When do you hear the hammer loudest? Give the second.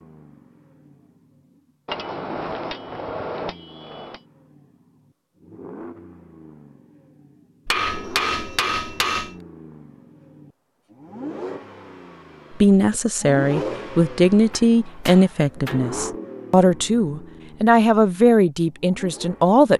8 s.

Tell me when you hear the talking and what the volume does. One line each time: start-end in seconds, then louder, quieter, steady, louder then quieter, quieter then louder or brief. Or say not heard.
12.6-19.7 steady.